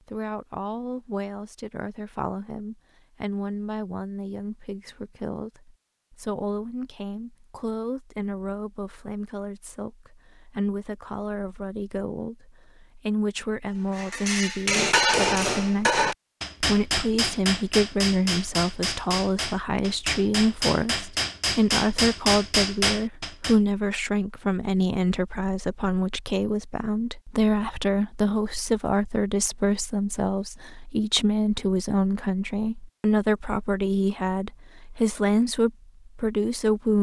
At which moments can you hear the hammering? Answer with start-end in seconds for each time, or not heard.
13.9-23.6.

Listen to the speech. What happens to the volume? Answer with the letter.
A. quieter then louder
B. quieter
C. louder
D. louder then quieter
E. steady
C.